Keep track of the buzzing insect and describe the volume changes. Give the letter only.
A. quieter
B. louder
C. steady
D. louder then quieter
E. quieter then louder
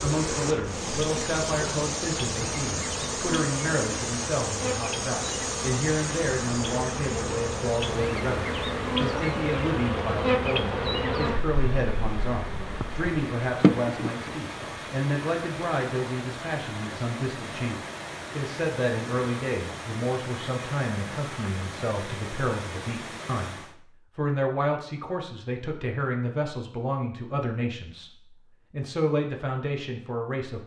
B.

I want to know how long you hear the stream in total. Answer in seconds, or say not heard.
24 s.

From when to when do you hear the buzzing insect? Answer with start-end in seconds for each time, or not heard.
0.0-14.3.